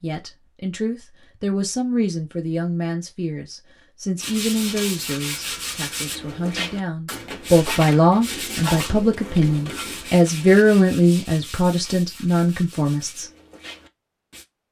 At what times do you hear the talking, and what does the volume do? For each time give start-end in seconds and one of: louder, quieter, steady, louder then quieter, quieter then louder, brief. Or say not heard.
0.0-13.2 louder.